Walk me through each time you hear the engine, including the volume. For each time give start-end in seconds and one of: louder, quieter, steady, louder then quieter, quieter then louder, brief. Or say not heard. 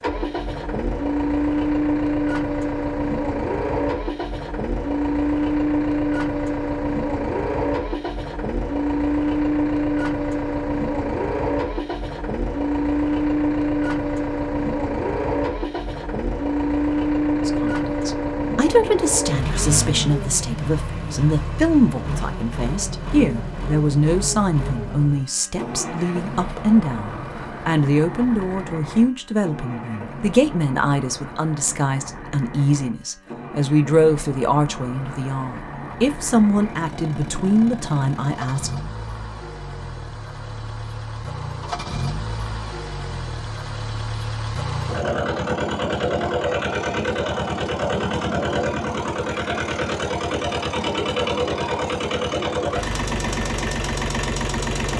0.0-54.9 quieter then louder.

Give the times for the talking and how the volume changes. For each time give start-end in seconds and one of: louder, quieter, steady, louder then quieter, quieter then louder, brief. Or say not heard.
17.4-38.7 steady.